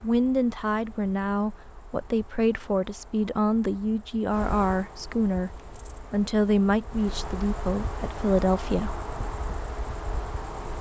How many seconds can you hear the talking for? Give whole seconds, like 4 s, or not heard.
9 s.